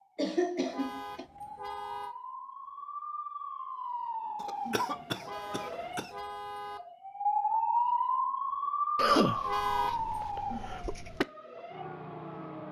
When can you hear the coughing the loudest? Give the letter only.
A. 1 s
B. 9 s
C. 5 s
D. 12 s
B.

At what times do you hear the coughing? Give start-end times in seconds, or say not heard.
0.1-1.2, 4.4-6.1, 8.9-11.2.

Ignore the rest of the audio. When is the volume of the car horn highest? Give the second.
10 s.